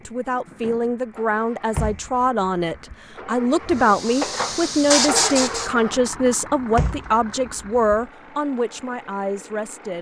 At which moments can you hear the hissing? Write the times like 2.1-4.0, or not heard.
3.6-5.7.